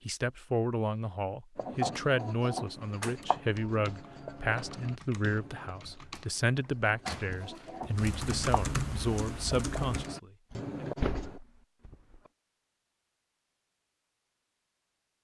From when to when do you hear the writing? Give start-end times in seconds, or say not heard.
1.6-11.4.